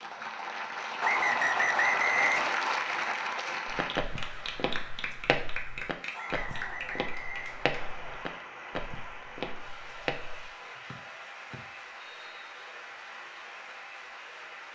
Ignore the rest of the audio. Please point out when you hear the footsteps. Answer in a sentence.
The footsteps can be heard from 3.6 to 10.5 s.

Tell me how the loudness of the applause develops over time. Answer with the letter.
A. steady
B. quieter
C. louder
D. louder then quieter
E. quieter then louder
B.